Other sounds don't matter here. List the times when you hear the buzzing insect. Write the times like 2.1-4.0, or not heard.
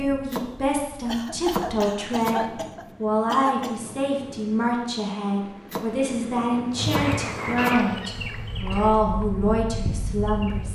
6.8-10.7.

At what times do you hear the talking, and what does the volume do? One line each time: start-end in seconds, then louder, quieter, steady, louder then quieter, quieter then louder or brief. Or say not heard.
0.0-10.7 steady.